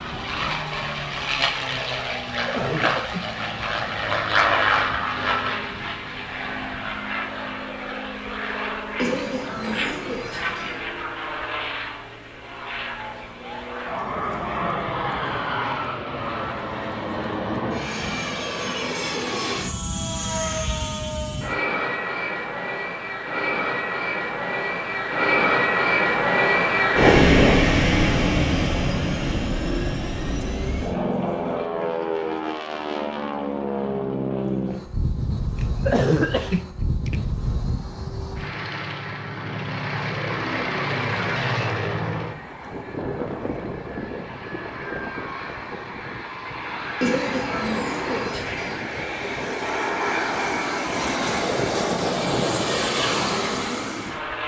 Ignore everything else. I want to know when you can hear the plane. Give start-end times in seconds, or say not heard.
0.0-54.4.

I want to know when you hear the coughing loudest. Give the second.
36 s.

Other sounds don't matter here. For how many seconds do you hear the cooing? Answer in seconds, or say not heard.
4 s.